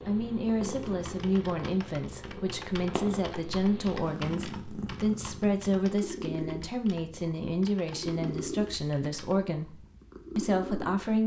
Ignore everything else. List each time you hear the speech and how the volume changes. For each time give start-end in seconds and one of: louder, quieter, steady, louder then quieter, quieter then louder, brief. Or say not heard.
0.1-11.2 steady.